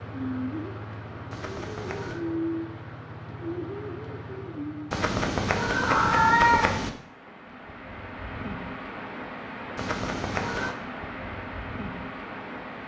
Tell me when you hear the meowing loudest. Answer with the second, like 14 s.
6 s.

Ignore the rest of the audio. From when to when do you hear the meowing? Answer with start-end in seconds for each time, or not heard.
1.3-2.2, 4.9-6.9, 9.8-10.8.